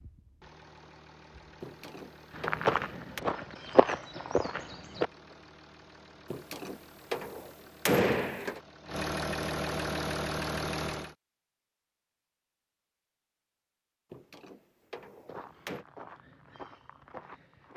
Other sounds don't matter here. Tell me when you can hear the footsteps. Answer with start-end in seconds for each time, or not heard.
2.4-5.1, 15.2-17.7.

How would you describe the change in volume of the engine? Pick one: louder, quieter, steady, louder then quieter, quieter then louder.
louder.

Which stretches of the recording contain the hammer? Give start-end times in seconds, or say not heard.
1.6-3.2, 6.3-8.6, 14.1-15.8.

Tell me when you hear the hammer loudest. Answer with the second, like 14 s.
8 s.